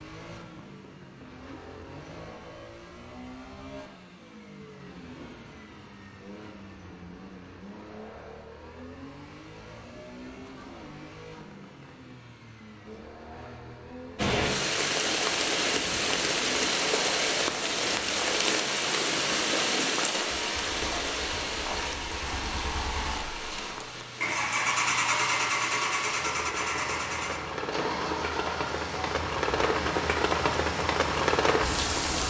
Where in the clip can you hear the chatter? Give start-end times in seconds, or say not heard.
not heard.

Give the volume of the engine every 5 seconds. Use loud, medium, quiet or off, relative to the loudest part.
quiet, quiet, quiet, quiet, loud, loud, off.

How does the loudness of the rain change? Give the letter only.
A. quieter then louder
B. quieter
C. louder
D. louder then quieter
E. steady
A.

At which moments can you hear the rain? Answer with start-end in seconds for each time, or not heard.
14.2-32.2.